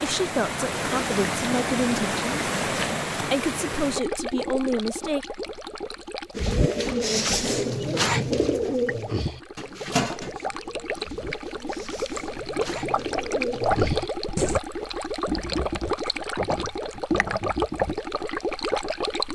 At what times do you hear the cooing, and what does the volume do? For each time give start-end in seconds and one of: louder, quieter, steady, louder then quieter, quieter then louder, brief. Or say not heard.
6.3-14.6 quieter then louder.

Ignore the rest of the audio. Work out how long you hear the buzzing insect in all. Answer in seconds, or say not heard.
not heard.